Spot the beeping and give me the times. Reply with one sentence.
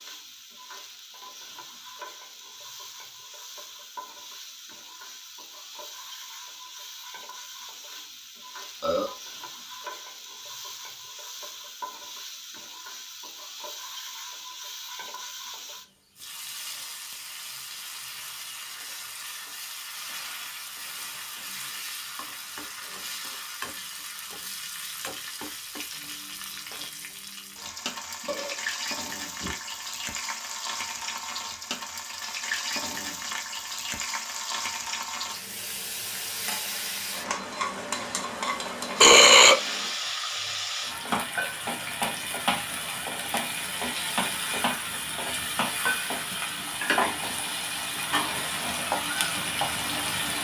The beeping can't be heard in this clip.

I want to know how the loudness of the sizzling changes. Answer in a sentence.
The volume of the sizzling goes up.